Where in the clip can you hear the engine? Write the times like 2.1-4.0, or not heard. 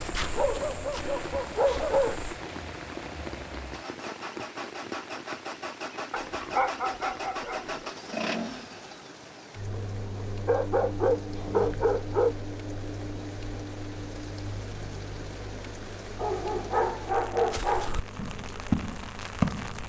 0.0-19.8.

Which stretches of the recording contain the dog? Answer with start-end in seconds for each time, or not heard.
0.1-2.1, 6.1-7.9, 10.4-12.3, 16.1-17.9.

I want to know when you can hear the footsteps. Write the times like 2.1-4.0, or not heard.
0.0-2.2, 17.5-19.8.